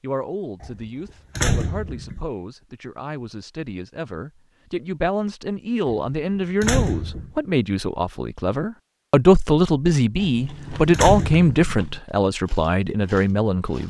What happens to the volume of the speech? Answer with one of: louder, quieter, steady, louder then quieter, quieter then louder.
louder.